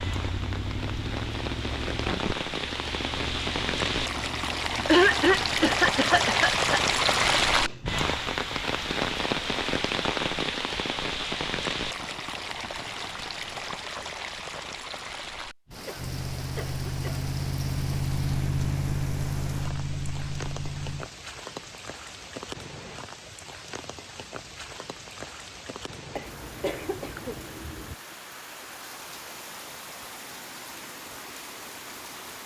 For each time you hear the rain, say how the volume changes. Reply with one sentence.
You can hear the rain from 0.0 to 32.4 s, getting quieter.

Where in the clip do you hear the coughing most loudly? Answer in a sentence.
The loudest moment of the coughing is at 5 seconds.